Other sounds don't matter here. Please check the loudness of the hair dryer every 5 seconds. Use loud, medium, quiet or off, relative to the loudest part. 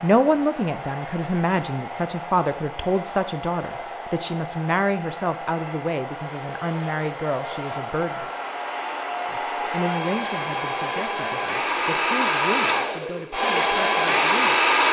quiet, medium, loud.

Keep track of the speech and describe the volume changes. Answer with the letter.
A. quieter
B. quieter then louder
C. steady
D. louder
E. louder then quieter
A.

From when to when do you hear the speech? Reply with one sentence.
The speech can be heard from 0.0 to 8.2 s and from 9.3 to 14.6 s.